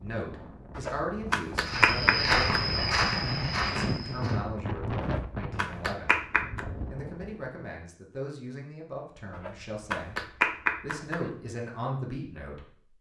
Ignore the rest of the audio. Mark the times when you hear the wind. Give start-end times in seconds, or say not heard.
0.0-7.5.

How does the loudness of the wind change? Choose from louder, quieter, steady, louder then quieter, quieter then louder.
louder then quieter.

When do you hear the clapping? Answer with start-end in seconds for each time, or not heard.
0.8-2.7, 5.0-6.7, 9.3-11.3.